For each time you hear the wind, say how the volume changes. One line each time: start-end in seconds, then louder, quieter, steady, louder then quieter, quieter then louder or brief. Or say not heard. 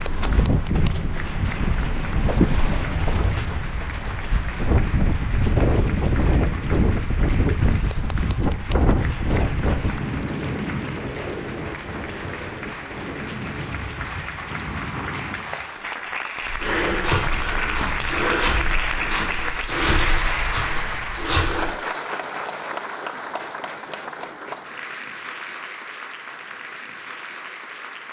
0.0-15.7 quieter.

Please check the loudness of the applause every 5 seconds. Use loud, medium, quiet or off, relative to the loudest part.
medium, medium, medium, loud, loud, medium.